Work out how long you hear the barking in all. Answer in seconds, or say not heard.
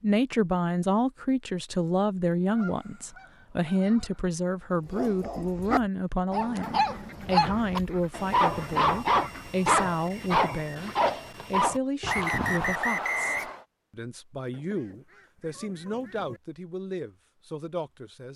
8 s.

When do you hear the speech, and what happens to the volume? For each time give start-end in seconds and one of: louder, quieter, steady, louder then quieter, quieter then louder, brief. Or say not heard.
0.0-18.3 quieter.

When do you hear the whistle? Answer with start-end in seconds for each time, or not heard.
12.1-13.7.